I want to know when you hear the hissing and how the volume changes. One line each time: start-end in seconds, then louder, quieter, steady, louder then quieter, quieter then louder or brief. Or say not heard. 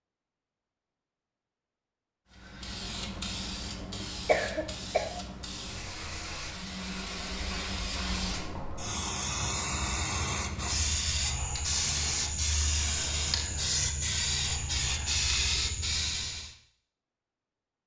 2.3-16.6 louder.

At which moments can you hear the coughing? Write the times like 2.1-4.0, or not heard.
4.2-5.0.